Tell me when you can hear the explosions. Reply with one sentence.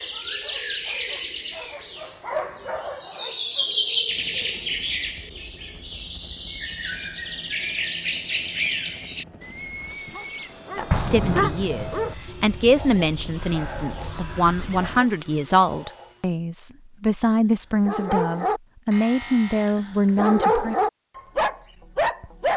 The explosions can be heard from 10.9 to 12.1 s.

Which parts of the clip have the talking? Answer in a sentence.
The talking can be heard from 10.8 to 20.8 s.